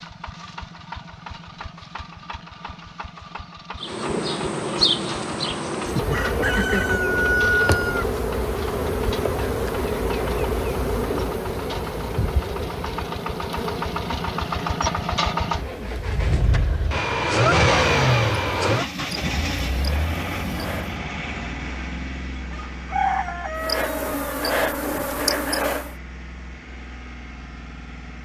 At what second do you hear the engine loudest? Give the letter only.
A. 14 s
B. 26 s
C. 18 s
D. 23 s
C.